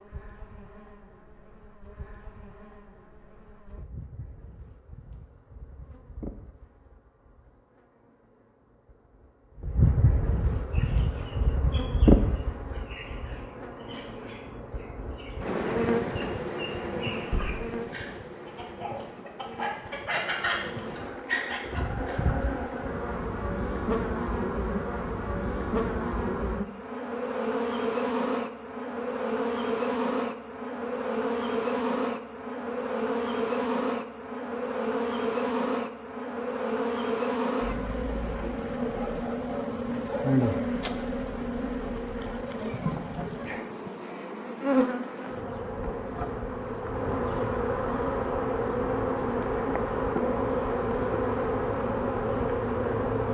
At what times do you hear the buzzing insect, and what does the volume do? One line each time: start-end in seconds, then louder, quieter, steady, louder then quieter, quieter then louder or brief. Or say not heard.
0.0-53.2 louder.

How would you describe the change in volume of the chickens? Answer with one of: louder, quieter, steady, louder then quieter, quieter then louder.
louder.